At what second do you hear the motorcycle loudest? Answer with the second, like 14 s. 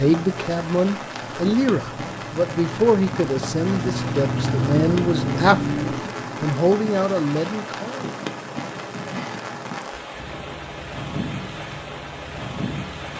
5 s.